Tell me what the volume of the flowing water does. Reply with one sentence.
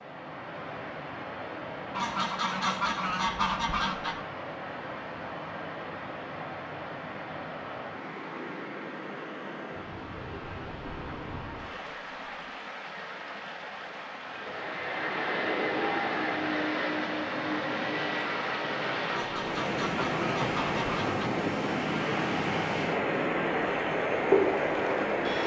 The volume of the flowing water goes up.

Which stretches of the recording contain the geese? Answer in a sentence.
You can hear the geese from 1.9 to 4.2 s and from 19.1 to 21.2 s.